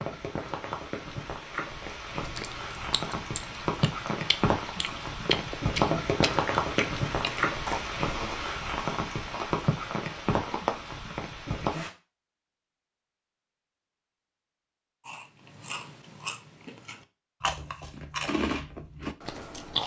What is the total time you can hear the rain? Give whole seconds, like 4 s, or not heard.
12 s.